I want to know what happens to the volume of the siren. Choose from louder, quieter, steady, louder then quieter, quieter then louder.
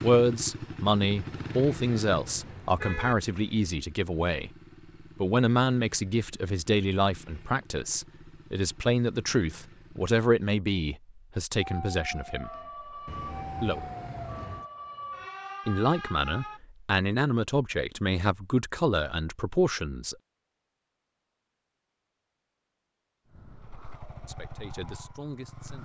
steady.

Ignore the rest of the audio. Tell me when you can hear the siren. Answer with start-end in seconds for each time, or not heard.
11.6-16.6.